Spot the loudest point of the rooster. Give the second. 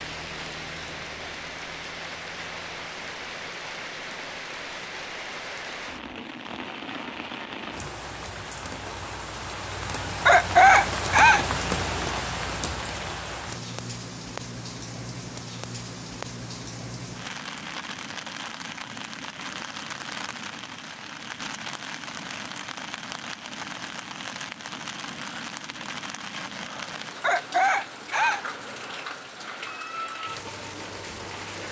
11 s.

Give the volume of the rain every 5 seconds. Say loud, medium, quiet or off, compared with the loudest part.
medium, medium, loud, medium, medium, medium, medium.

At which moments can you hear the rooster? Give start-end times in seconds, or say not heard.
10.2-11.4, 27.2-28.4.